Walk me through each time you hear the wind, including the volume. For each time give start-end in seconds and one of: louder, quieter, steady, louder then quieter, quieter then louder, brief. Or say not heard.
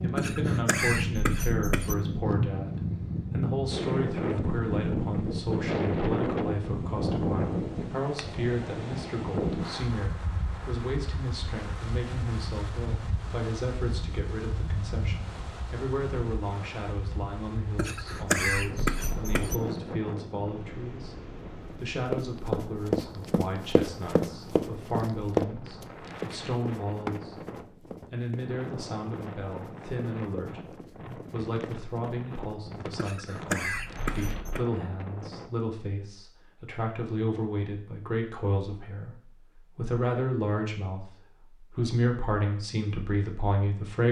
0.0-35.6 quieter.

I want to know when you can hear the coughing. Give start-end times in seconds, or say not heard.
0.1-1.9, 17.8-19.6, 33.0-34.6.